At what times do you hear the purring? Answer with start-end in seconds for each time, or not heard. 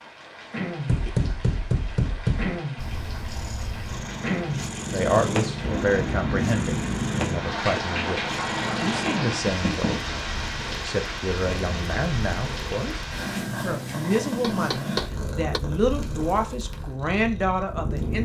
2.8-18.2.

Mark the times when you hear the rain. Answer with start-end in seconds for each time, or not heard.
0.0-13.4.